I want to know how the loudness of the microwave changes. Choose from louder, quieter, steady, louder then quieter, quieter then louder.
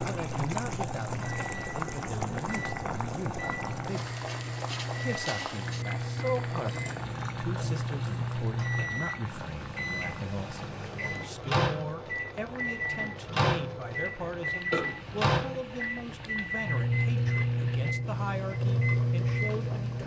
louder.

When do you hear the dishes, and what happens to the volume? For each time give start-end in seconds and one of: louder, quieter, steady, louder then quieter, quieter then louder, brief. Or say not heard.
not heard.